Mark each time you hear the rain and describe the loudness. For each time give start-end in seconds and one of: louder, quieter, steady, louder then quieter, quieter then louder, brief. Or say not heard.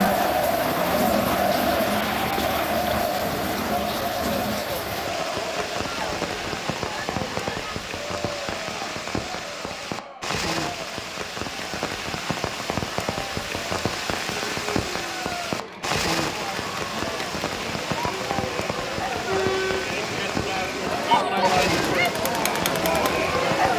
0.0-23.7 steady.